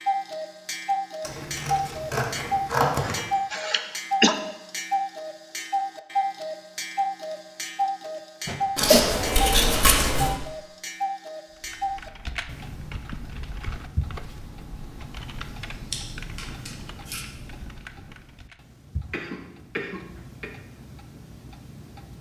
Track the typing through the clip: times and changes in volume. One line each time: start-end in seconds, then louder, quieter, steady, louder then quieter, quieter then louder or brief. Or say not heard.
11.5-18.6 quieter.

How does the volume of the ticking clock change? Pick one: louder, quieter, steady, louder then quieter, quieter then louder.
quieter.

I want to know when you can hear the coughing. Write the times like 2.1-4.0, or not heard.
3.0-4.3, 8.4-9.2, 19.1-20.5.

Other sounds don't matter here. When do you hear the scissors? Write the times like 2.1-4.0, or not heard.
1.2-3.2, 8.8-10.3, 15.9-17.2.